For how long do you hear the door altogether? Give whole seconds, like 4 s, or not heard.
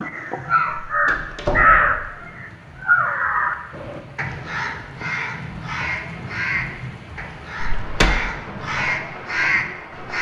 2 s.